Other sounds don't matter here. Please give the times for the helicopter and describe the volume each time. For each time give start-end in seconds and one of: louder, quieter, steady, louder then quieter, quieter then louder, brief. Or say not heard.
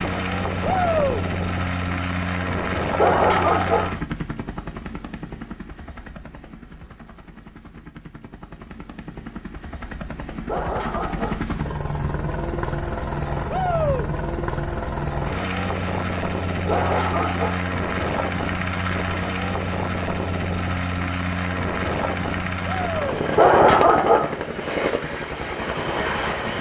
0.0-26.5 quieter then louder.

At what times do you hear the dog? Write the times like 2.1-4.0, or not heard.
3.0-4.0, 10.4-11.4, 16.6-17.6, 23.4-24.4.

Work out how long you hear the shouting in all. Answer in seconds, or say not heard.
2 s.